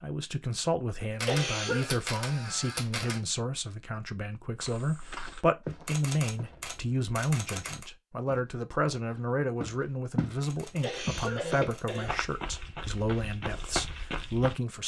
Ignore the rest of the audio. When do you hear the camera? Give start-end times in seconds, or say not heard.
1.1-3.2, 5.8-7.9, 10.4-12.1.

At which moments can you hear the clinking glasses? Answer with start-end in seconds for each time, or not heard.
not heard.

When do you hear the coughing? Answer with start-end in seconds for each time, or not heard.
1.1-1.9, 10.6-12.2.